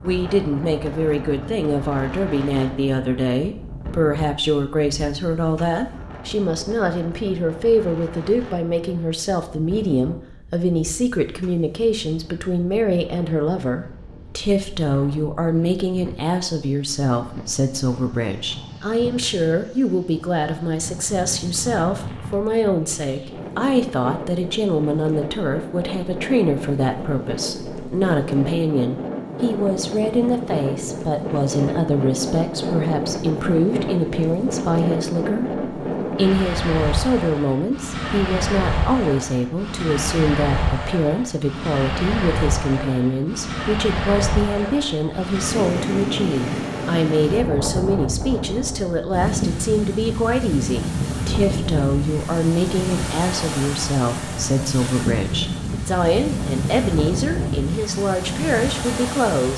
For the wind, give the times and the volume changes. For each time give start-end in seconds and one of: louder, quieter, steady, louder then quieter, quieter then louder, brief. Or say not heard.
0.0-59.5 louder.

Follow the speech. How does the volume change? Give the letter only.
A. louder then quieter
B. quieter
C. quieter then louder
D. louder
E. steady
E.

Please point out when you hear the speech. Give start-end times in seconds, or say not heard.
0.0-59.5.